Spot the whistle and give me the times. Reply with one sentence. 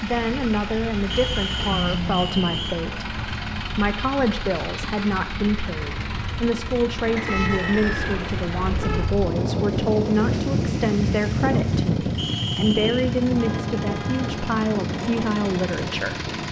You can hear the whistle from 1.1 to 2.8 s, from 7.2 to 8.2 s and from 12.2 to 13.1 s.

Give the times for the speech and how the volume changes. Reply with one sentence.
You can hear the speech from 0.0 to 16.3 s, at a steady volume.